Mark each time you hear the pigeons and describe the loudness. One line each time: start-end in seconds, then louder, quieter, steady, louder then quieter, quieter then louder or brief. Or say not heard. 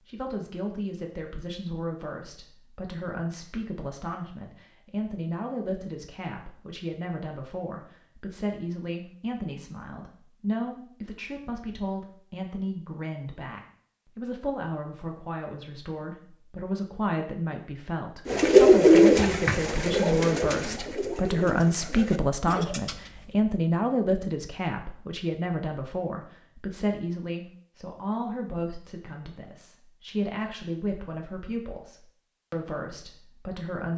18.2-23.4 quieter.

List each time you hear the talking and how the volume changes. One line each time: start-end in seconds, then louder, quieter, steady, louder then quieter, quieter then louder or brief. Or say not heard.
0.1-33.9 louder then quieter.